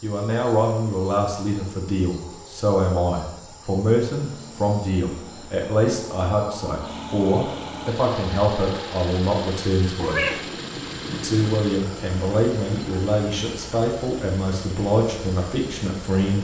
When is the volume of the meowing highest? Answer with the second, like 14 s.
10 s.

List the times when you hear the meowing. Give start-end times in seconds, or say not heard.
9.9-11.4.